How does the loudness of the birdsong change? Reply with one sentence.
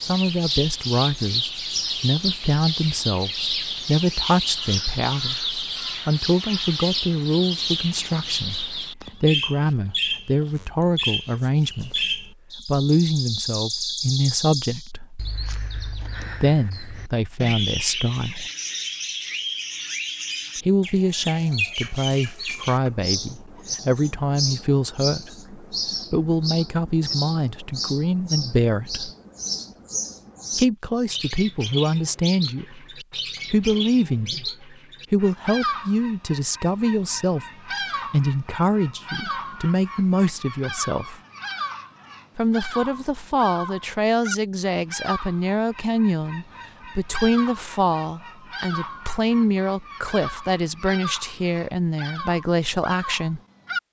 The loudness of the birdsong goes down.